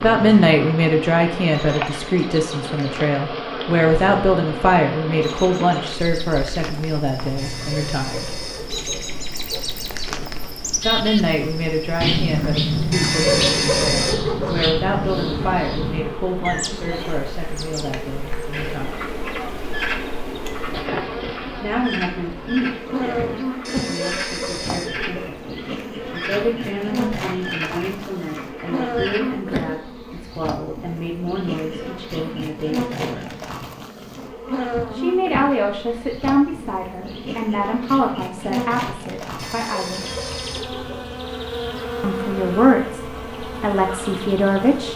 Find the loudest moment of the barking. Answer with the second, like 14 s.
13 s.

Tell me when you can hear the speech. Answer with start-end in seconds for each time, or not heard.
0.0-8.3, 10.8-19.1, 21.6-33.2, 34.9-40.0, 42.0-44.9.